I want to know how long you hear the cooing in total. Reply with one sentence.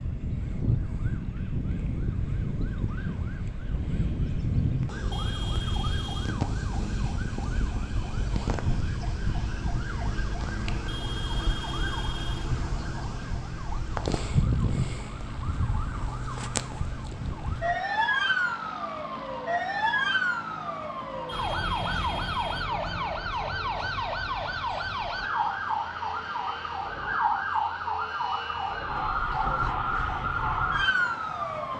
You can't hear the cooing here.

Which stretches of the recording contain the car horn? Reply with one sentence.
You can hear the car horn from 5.1 to 6.3 s, from 10.8 to 12.5 s and from 21.2 to 22.7 s.